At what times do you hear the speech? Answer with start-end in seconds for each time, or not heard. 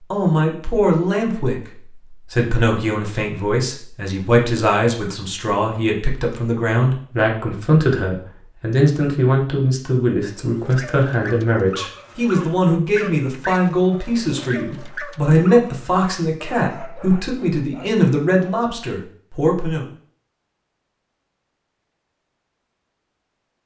0.1-19.9.